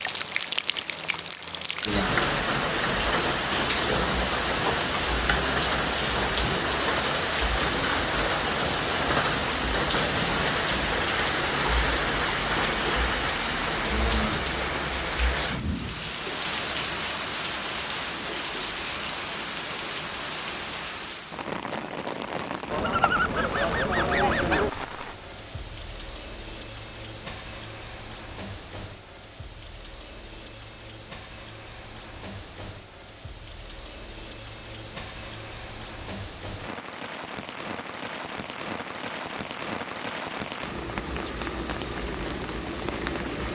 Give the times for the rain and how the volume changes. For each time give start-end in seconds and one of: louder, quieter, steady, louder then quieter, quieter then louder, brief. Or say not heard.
0.0-43.5 quieter then louder.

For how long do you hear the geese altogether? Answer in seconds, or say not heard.
2 s.